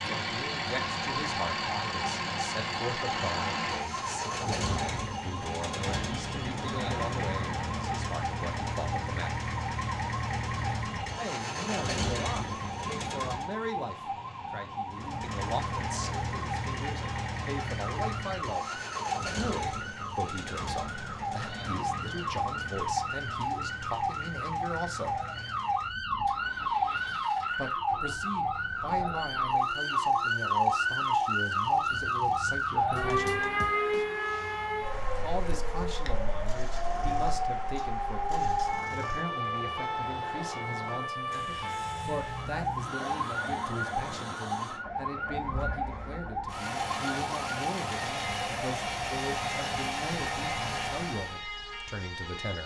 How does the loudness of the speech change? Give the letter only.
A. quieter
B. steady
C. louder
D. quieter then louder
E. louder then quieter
B.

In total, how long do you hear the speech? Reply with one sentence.
You can hear the speech for 47 seconds altogether.